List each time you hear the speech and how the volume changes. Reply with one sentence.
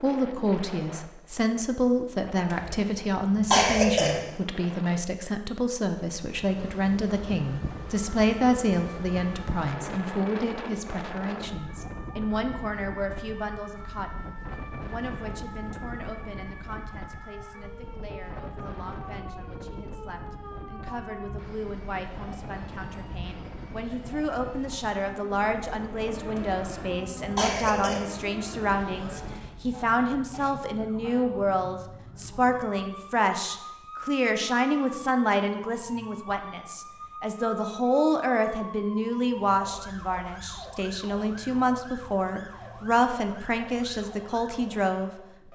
You can hear the speech from 0.0 to 45.5 s, getting quieter then louder.